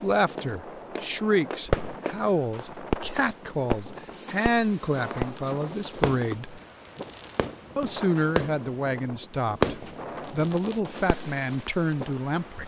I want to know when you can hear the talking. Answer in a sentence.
The talking can be heard from 0.0 to 6.6 s and from 7.8 to 12.6 s.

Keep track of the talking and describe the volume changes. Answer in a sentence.
The loudness of the talking stays about the same.